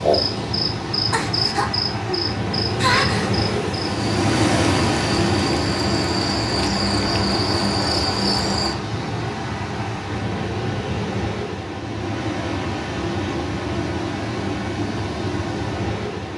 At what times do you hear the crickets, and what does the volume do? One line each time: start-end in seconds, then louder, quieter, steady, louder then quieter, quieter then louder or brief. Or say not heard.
0.0-8.8 quieter then louder.